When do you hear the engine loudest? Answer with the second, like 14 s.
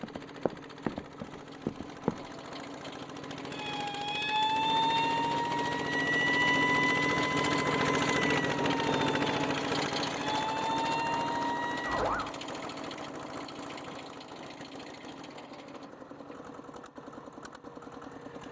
8 s.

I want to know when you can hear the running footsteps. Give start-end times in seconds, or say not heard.
0.0-2.2.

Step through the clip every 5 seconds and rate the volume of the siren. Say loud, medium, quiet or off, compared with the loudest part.
loud, loud, loud, off.